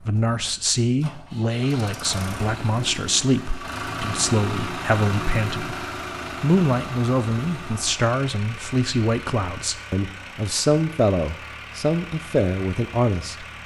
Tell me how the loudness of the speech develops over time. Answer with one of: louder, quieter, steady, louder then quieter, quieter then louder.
steady.